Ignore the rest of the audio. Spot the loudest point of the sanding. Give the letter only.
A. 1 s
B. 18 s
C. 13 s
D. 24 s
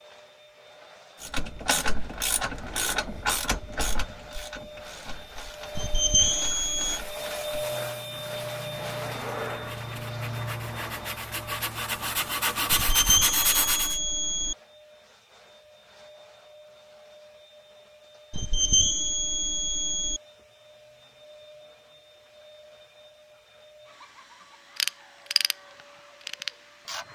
C.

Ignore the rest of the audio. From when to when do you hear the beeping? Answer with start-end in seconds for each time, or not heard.
5.8-7.0, 12.7-14.6, 18.3-20.2.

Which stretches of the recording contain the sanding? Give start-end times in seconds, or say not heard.
7.5-14.0.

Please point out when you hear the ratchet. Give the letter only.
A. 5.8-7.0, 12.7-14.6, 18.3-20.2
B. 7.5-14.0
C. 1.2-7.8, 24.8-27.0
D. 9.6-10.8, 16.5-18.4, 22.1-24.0
C.